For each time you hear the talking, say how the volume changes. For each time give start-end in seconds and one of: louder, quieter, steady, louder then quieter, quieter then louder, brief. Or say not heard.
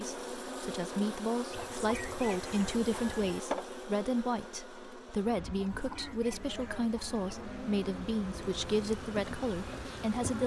0.0-10.4 steady.